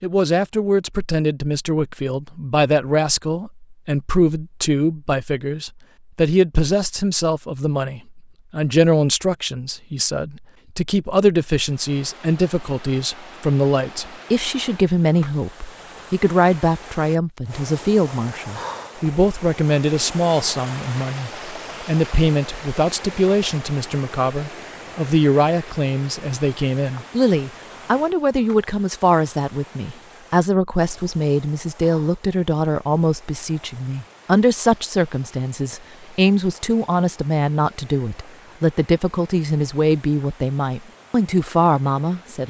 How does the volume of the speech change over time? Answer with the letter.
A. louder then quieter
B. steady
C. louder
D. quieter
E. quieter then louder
B.